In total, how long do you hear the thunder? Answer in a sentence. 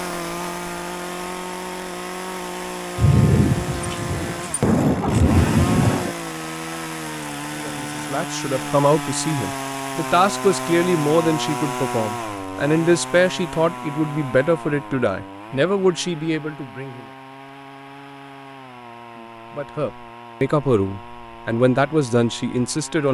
You can hear the thunder for 3 seconds altogether.